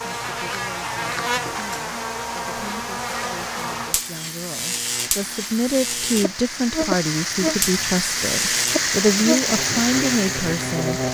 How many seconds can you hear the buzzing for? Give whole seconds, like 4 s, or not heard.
11 s.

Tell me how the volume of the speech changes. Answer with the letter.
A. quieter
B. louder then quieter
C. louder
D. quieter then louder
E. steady
C.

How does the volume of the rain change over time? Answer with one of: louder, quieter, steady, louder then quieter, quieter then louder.
louder.